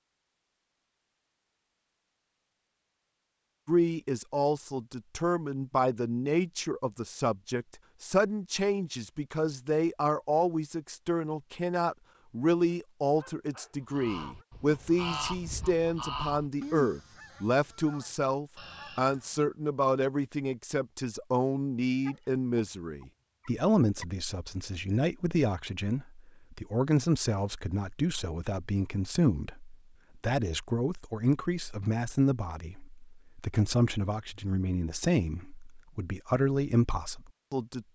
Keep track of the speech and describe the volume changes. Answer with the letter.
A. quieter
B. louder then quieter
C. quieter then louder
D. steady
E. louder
D.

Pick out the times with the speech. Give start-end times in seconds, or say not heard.
3.6-37.9.